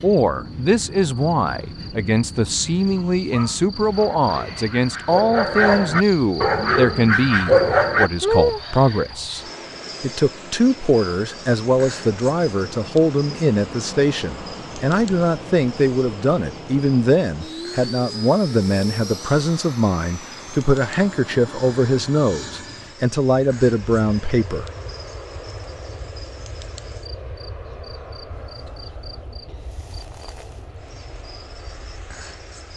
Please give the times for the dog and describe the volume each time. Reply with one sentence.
The dog can be heard from 2.9 to 8.1 s, getting louder.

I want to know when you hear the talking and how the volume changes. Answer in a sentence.
You can hear the talking from 0.0 to 24.6 s, at a steady volume.